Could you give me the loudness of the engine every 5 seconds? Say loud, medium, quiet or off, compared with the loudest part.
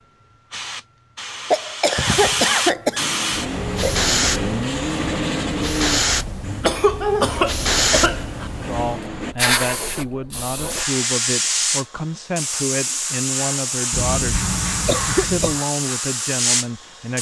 loud, loud, off, off.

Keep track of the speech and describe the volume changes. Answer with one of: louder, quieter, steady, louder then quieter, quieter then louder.
steady.